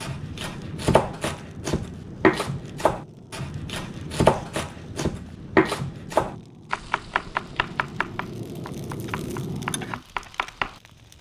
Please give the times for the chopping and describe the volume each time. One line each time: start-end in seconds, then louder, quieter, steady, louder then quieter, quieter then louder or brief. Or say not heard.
0.0-11.1 quieter.